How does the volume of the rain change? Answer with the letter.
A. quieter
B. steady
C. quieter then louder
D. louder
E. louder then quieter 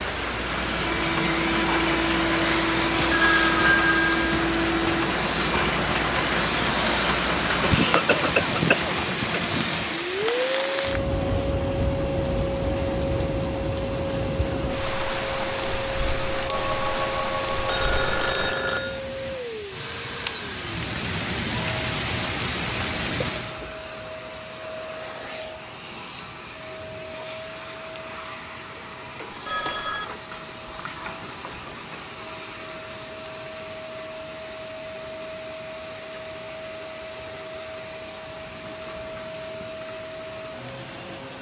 A.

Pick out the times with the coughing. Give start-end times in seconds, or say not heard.
7.6-9.4.